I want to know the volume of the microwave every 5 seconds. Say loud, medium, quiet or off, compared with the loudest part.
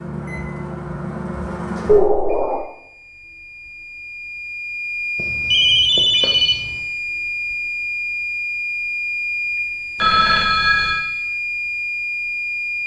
medium, loud, loud.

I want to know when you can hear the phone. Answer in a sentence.
The phone can be heard from 1.9 to 2.6 s, from 5.2 to 6.8 s and from 9.9 to 11.1 s.